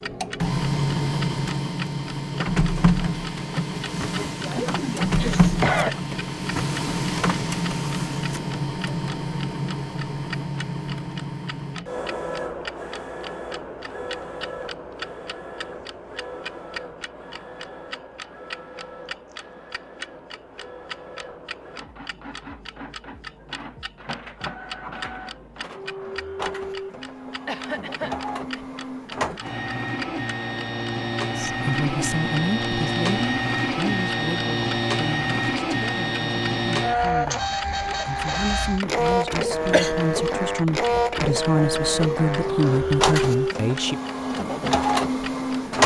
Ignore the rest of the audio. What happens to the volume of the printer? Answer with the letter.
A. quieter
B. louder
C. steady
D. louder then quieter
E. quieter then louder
E.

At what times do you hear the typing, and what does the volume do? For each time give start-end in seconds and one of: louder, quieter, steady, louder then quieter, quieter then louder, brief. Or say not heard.
not heard.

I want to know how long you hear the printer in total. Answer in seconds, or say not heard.
46 s.